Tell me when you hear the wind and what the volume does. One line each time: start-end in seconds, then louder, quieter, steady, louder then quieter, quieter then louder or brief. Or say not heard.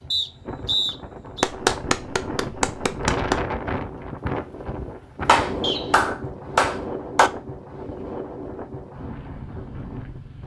0.0-10.4 louder then quieter.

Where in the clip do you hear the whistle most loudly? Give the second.
1 s.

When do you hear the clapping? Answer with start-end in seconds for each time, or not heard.
1.4-3.4, 5.2-7.3.